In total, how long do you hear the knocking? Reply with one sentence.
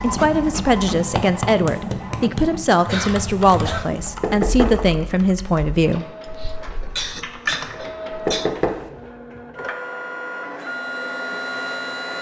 The knocking can be heard for 3 seconds in total.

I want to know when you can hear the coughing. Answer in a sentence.
The coughing can be heard from 2.9 to 4.0 s and from 6.4 to 8.5 s.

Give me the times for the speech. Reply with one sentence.
You can hear the speech from 0.0 to 6.0 s.